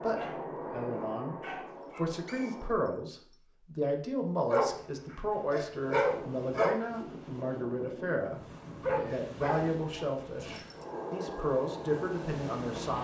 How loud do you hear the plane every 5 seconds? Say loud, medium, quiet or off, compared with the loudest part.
loud, off, loud.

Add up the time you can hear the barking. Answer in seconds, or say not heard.
6 s.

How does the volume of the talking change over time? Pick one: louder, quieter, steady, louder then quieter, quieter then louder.
steady.